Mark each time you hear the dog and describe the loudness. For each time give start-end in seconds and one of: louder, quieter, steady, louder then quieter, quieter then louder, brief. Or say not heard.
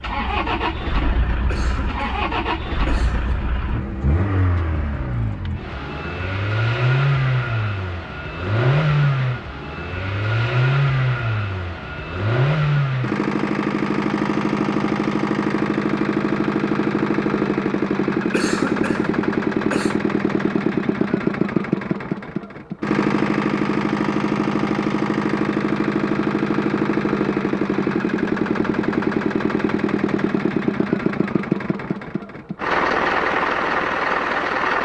not heard.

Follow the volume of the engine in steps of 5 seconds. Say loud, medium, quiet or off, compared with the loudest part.
medium, loud, loud, loud, loud, loud, loud.